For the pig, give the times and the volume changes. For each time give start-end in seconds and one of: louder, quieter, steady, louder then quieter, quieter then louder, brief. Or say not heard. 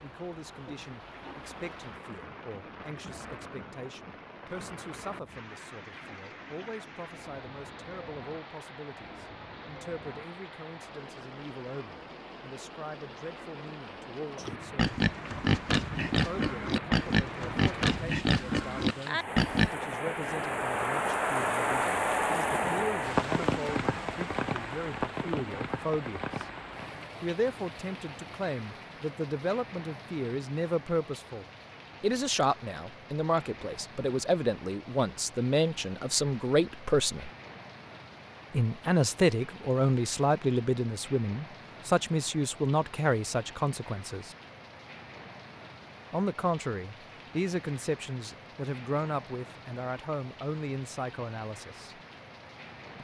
14.3-19.8 steady.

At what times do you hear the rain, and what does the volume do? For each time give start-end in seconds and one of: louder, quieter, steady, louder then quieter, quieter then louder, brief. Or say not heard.
0.0-53.0 louder then quieter.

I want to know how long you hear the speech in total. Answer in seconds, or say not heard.
47 s.